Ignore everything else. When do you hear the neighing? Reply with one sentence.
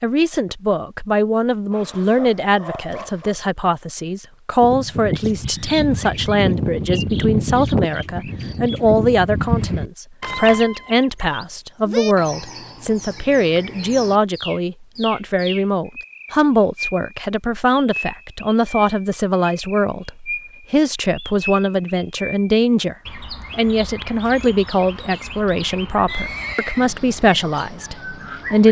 You can hear the neighing from 26.1 to 26.9 s.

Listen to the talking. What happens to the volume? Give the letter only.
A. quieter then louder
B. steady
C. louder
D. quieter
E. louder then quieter
B.